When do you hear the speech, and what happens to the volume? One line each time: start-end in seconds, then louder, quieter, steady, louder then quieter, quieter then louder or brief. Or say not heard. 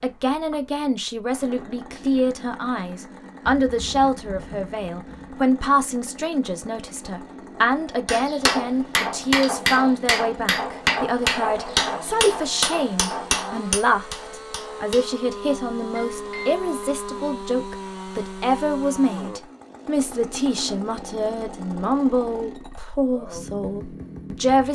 0.0-24.7 steady.